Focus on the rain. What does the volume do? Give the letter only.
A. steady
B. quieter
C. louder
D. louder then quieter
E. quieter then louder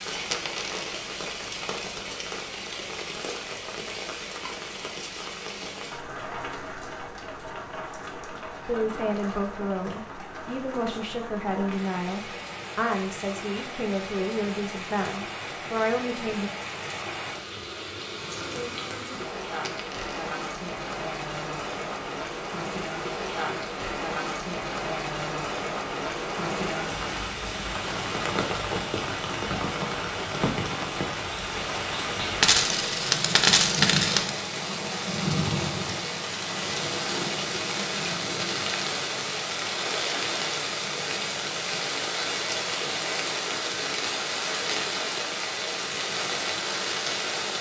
C.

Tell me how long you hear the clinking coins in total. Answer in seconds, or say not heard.
3 s.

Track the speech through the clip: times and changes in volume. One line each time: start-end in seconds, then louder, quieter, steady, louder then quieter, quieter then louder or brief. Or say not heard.
8.7-16.5 steady.